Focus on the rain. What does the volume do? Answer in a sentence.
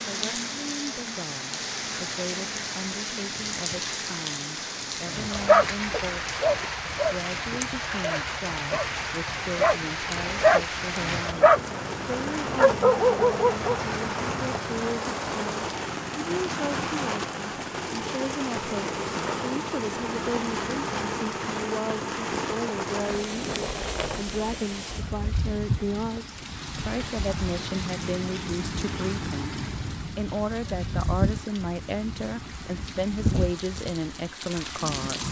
The loudness of the rain stays about the same.